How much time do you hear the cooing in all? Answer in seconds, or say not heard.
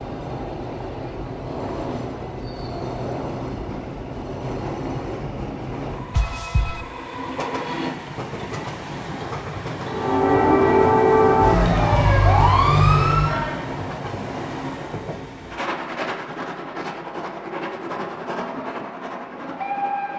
not heard.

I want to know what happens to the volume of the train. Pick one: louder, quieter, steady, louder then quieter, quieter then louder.
steady.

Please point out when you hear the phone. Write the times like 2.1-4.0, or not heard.
6.1-6.8.